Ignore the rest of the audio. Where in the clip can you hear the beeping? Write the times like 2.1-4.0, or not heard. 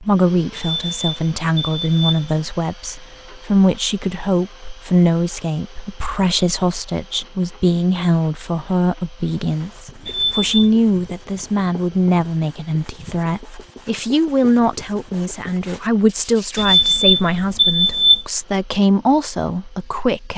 0.6-2.5, 10.1-10.6, 16.6-18.2.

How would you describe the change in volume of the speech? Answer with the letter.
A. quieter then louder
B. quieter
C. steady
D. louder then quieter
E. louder
C.